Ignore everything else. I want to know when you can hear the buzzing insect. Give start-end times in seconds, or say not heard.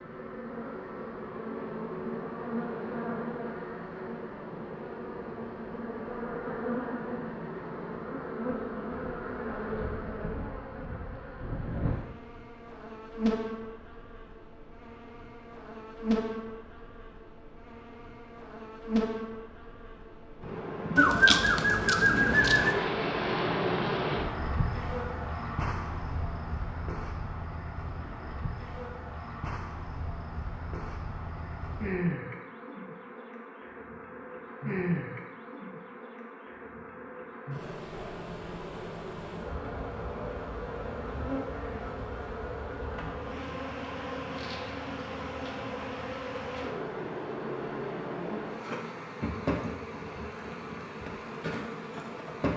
0.0-52.5.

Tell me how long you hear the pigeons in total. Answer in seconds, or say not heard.
2 s.